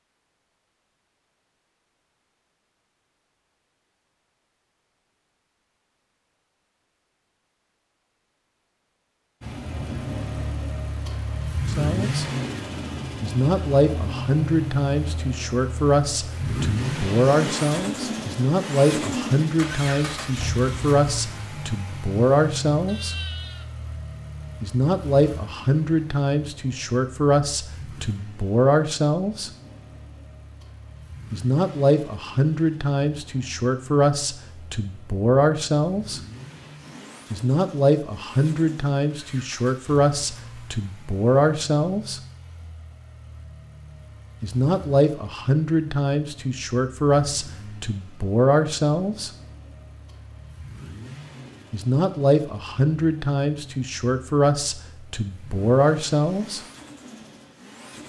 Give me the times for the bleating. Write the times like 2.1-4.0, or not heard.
22.9-23.8.